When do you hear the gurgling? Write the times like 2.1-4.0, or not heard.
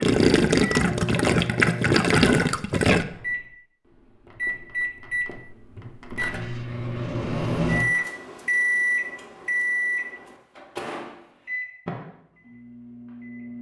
0.0-3.0.